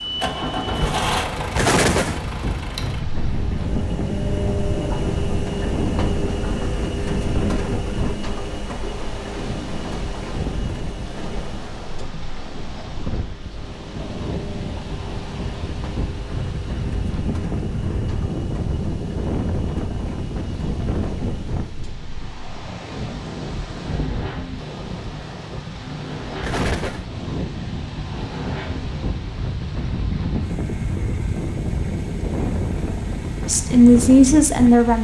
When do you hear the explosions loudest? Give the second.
2 s.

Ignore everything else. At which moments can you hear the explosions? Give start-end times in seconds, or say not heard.
1.6-2.2, 26.4-27.1.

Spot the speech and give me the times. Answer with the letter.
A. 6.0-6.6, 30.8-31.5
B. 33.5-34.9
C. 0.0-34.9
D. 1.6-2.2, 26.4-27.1
B.